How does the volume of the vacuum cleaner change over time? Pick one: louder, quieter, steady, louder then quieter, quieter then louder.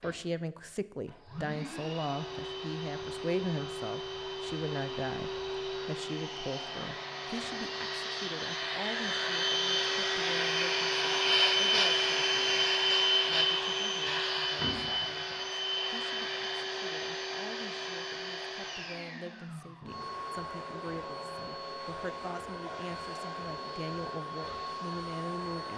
louder then quieter.